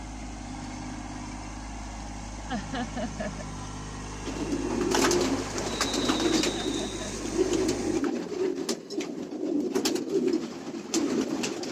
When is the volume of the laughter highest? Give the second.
3 s.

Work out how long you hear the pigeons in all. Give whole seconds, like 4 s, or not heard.
7 s.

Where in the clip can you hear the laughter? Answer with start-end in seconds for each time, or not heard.
2.5-3.5, 6.4-7.2.